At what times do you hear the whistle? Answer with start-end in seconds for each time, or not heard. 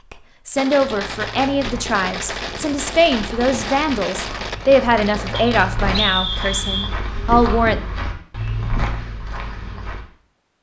5.3-6.9.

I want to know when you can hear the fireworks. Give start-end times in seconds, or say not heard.
0.6-6.0.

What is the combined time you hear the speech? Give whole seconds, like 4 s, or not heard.
8 s.